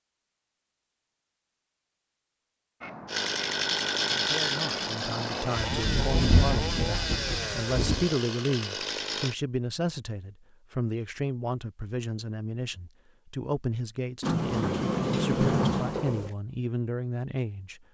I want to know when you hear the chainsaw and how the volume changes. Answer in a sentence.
The chainsaw can be heard from 3.0 to 9.3 s, getting quieter.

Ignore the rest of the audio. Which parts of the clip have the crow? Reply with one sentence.
You can hear the crow from 2.8 to 5.6 s.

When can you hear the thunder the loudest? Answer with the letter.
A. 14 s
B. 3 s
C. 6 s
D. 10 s
C.